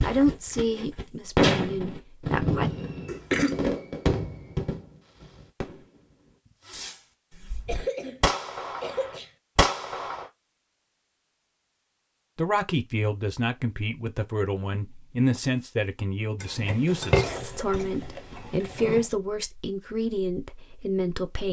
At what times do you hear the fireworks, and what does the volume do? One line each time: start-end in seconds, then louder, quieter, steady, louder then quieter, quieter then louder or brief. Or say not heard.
0.0-10.2 quieter then louder
16.7-18.6 brief.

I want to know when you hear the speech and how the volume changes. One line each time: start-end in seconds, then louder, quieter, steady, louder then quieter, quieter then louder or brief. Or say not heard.
0.0-2.7 brief
12.3-21.4 steady.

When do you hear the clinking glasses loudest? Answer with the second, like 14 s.
17 s.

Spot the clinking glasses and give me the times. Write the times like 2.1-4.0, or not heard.
16.4-19.1.